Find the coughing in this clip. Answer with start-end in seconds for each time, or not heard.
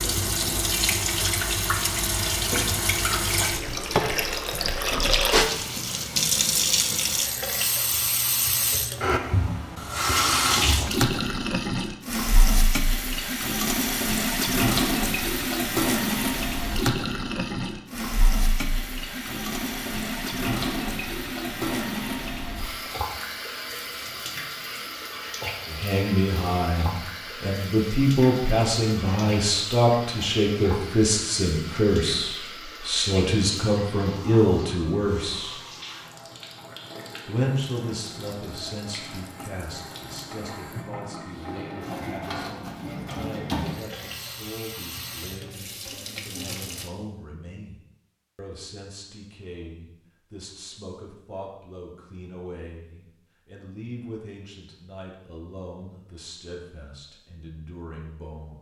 not heard.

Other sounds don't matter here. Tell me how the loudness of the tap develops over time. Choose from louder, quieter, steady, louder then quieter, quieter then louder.
quieter.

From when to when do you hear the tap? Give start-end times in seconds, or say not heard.
0.0-46.9.